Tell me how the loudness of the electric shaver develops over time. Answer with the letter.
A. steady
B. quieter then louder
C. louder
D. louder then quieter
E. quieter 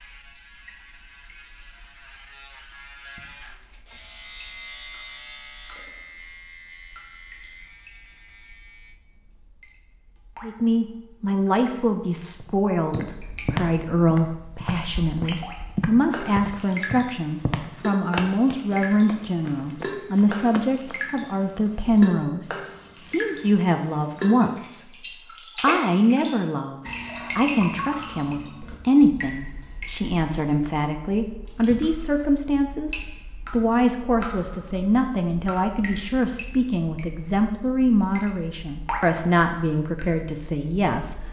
D.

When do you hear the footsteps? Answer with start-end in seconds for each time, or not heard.
12.4-21.0.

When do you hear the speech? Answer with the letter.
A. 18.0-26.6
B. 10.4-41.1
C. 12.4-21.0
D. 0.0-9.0
B.